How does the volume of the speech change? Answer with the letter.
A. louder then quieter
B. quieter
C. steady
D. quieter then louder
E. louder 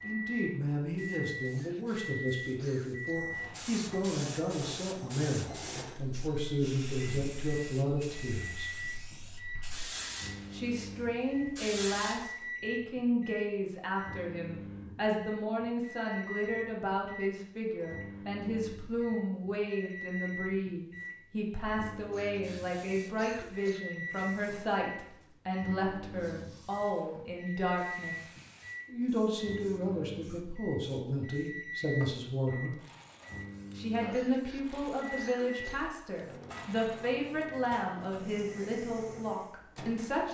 C.